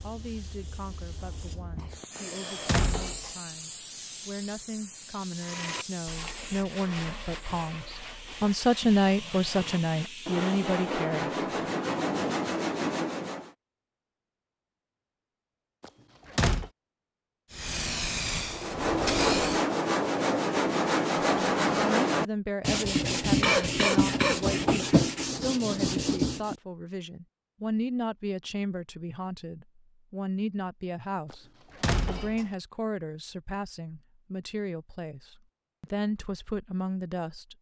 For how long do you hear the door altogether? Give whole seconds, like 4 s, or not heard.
3 s.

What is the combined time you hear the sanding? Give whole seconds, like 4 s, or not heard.
16 s.